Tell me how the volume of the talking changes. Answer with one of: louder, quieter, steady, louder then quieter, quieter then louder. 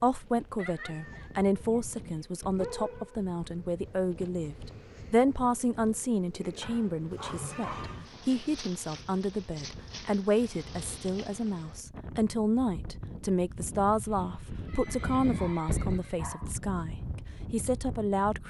steady.